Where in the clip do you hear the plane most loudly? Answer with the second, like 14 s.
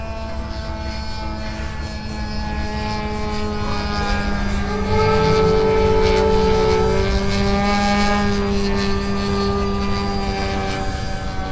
8 s.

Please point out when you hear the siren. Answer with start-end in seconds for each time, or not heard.
3.5-7.1.